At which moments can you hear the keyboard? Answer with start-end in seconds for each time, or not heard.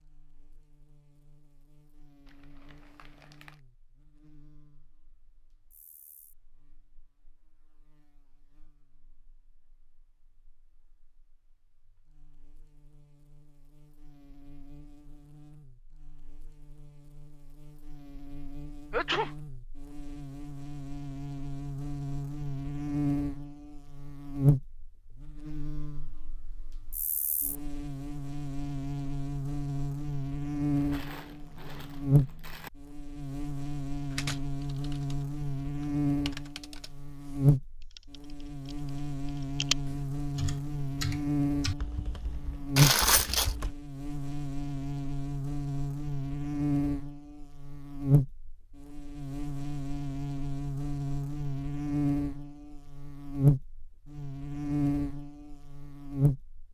34.1-43.8.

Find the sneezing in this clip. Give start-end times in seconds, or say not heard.
18.9-19.3.